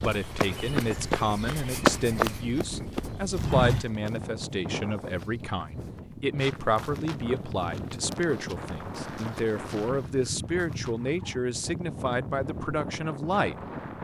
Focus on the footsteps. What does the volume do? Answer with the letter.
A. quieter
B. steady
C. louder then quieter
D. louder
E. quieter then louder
A.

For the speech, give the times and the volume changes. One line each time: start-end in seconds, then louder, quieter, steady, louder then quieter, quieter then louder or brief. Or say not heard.
0.0-13.6 steady.